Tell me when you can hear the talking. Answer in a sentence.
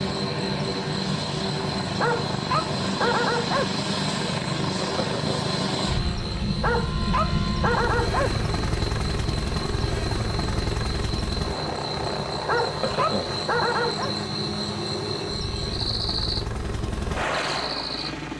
The talking can't be heard in this clip.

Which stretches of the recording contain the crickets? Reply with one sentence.
You can hear the crickets from 0.0 to 18.1 s.